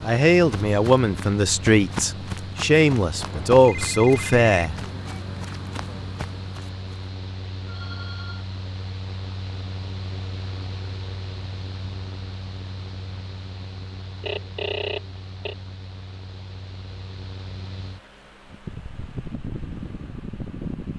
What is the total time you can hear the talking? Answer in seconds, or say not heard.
5 s.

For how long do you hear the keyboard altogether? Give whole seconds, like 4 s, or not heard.
not heard.